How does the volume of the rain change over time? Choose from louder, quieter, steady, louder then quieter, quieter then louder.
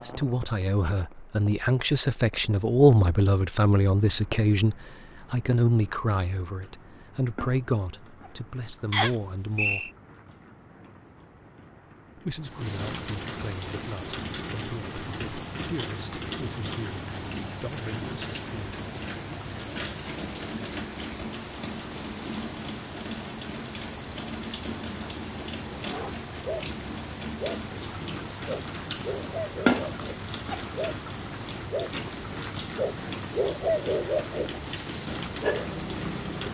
louder.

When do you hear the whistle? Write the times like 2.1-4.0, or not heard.
8.9-9.9.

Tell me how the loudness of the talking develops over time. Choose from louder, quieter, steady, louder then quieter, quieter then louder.
quieter.